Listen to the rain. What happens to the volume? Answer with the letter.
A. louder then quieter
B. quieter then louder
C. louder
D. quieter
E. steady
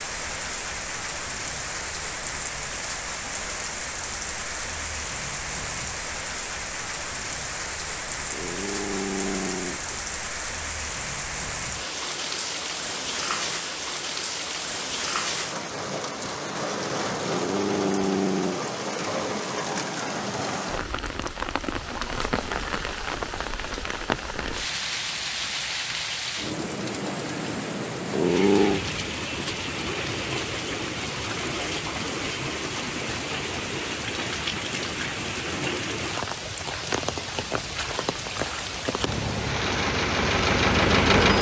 E.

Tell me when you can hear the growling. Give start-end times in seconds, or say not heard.
8.3-9.9, 17.2-18.6, 28.1-28.8.